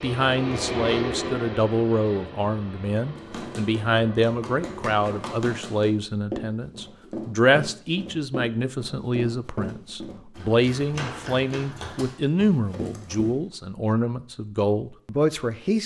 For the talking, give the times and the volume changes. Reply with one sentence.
The talking can be heard from 0.0 to 15.8 s, at a steady volume.